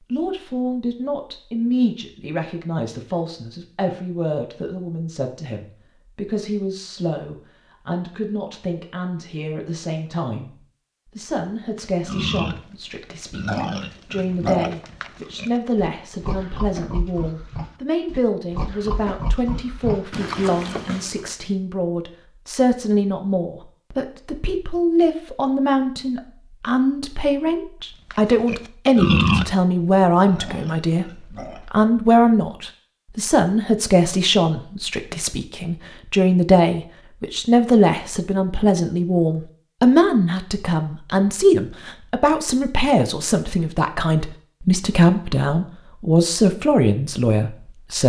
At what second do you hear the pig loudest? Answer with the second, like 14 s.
29 s.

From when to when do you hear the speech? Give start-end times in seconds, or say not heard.
0.1-48.0.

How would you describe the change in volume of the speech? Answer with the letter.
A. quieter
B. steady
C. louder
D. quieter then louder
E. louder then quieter
C.